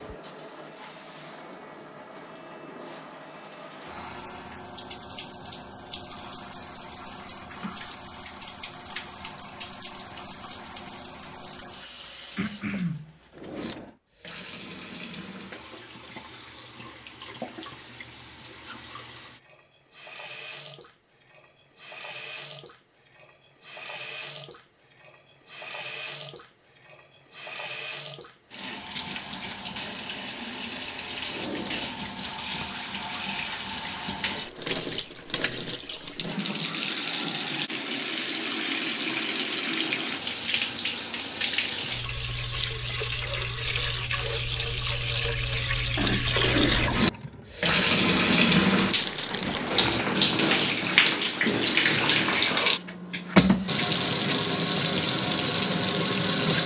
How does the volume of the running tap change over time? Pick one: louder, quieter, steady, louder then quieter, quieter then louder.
louder.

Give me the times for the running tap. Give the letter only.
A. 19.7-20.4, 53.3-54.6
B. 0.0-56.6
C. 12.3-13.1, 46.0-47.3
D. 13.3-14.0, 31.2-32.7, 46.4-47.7
B.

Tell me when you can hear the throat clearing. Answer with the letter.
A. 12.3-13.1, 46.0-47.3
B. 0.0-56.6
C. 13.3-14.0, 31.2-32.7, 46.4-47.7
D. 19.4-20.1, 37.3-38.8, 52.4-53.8
A.